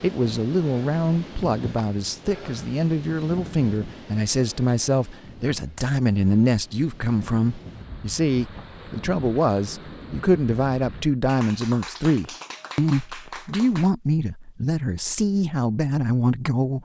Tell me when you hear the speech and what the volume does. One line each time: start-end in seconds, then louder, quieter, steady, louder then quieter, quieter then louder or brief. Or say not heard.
0.0-16.8 steady.